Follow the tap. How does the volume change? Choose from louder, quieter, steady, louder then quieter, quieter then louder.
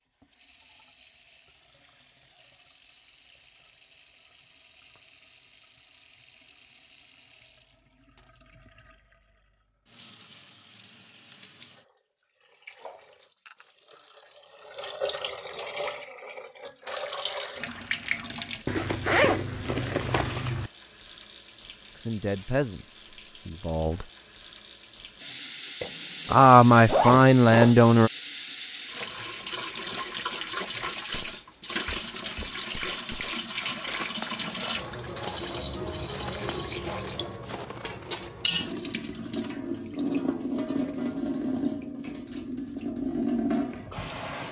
louder.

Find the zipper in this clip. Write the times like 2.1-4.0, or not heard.
18.6-20.7, 25.8-27.8.